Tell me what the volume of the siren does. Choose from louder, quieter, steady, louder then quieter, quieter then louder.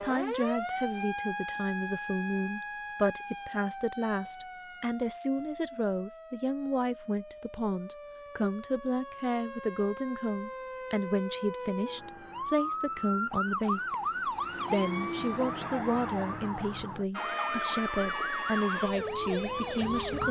quieter then louder.